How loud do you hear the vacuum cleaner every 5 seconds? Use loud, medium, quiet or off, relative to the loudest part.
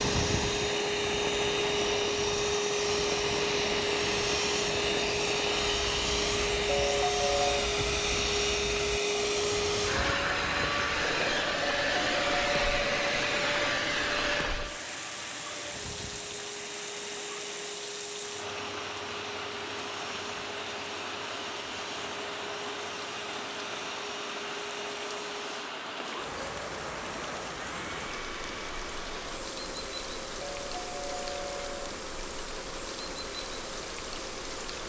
loud, loud, loud, quiet, quiet, quiet, quiet.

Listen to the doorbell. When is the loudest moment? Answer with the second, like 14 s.
7 s.